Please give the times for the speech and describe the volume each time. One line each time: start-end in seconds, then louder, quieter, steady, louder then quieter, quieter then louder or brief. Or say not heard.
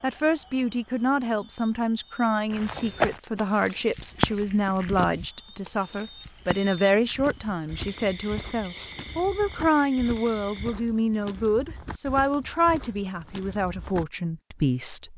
0.0-15.1 steady.